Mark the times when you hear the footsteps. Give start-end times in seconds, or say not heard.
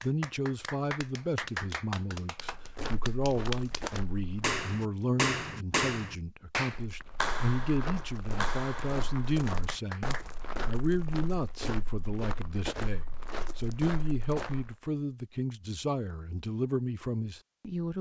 2.5-4.5, 6.5-14.8.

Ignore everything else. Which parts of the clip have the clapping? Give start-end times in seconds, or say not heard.
0.0-10.2.